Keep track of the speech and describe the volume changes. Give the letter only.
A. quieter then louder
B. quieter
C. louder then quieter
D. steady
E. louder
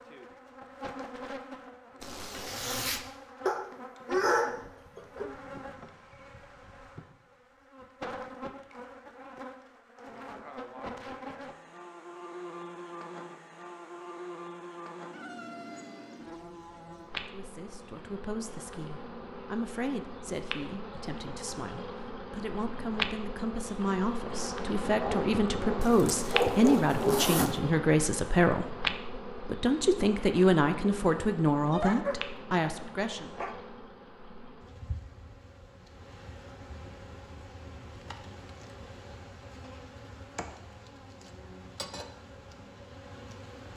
E.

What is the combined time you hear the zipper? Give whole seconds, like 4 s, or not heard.
3 s.